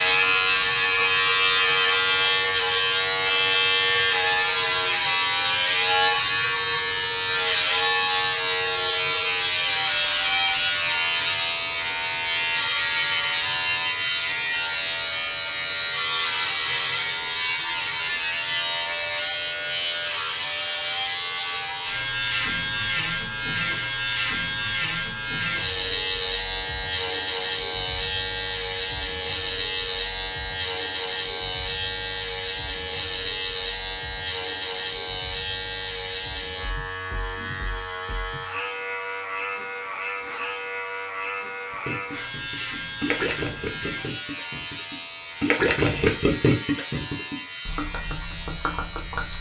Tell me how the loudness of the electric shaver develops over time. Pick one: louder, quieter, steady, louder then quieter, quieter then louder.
quieter.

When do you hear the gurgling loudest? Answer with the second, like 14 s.
46 s.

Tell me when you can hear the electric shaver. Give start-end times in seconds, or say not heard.
0.0-49.3.